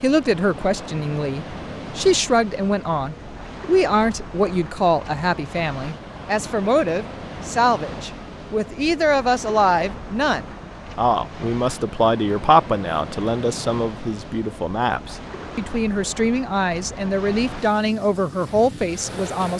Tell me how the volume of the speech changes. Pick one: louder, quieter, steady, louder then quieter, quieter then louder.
steady.